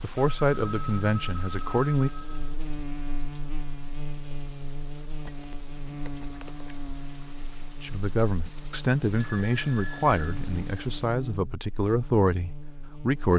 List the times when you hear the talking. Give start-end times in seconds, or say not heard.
0.0-2.1, 7.8-13.3.